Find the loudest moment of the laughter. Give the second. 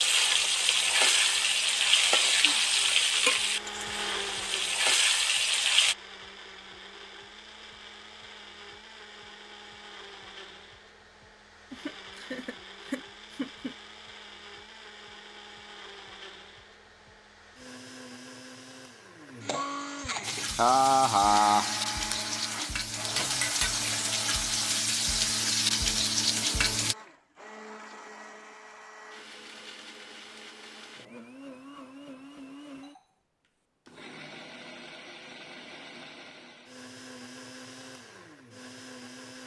21 s.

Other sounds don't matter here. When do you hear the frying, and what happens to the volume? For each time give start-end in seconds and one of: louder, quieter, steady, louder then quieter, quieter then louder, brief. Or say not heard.
0.0-6.0 quieter then louder
20.2-26.9 louder.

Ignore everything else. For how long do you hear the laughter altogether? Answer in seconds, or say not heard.
4 s.